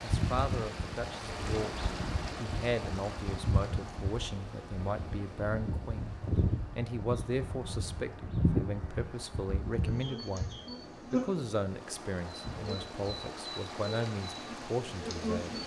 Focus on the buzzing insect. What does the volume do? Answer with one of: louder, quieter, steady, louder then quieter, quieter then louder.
louder then quieter.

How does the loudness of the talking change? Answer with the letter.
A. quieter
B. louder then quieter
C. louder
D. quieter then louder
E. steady
E.